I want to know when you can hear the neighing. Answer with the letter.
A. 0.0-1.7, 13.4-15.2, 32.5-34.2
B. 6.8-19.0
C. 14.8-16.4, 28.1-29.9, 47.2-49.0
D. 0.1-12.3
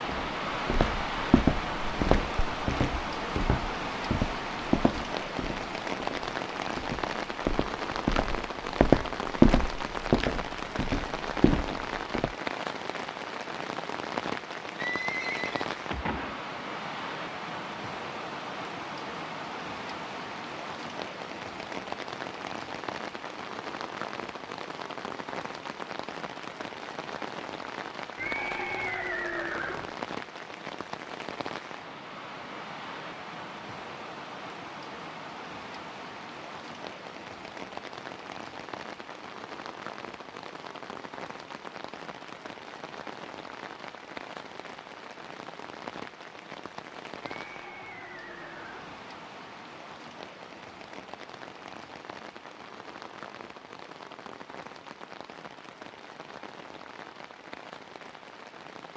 C.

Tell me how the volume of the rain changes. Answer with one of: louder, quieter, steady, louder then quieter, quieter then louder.
quieter.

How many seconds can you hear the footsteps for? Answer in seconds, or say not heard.
12 s.